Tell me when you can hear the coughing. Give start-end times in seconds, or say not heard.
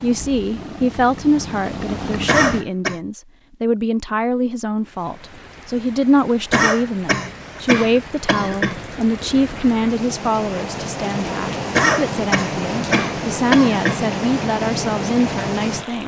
2.2-3.0, 6.5-8.8, 11.8-14.1.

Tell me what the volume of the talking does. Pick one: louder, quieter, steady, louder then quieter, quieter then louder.
steady.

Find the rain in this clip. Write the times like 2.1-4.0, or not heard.
4.8-16.0.